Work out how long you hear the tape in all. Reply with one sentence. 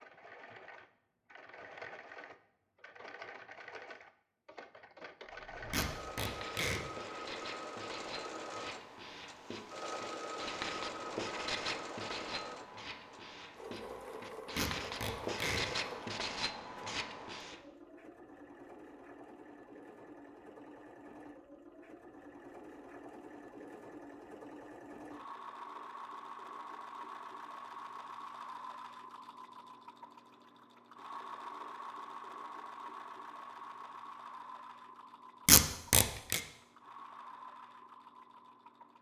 The tape can be heard for 3 seconds in total.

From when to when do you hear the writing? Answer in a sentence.
You can hear the writing from 5.2 to 17.6 s.